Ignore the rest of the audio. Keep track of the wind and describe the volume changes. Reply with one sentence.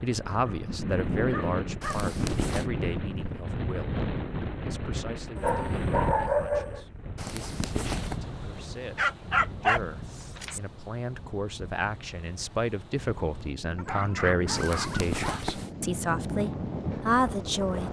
The volume of the wind goes down, then up.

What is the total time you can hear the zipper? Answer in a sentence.
The zipper can be heard for 3 seconds in total.